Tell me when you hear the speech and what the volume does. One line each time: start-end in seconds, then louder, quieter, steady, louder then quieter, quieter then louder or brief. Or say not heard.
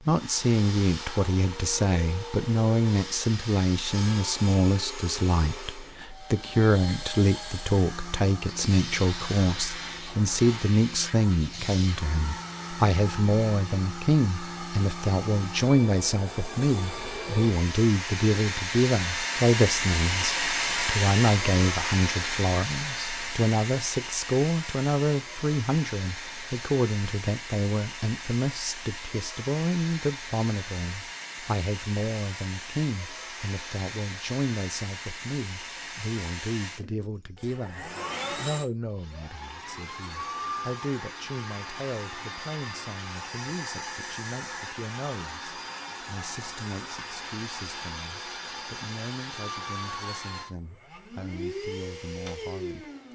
0.1-52.9 quieter.